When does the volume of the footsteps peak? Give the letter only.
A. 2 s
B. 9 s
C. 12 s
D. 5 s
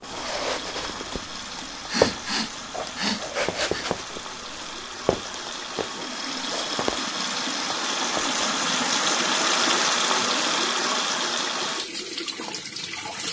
A.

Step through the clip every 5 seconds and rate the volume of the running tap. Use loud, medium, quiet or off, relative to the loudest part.
medium, loud, loud.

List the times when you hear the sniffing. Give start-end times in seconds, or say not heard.
1.9-3.9.